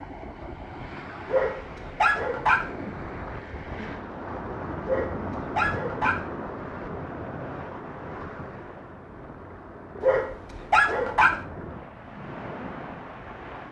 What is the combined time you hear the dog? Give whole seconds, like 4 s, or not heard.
4 s.